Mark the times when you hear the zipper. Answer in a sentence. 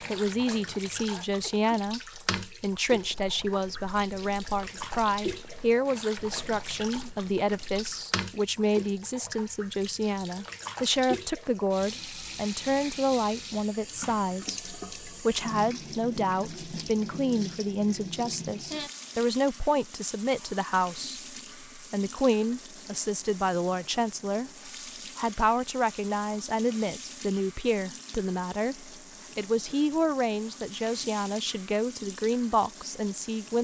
You can't hear the zipper here.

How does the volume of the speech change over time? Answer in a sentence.
The volume of the speech stays about the same.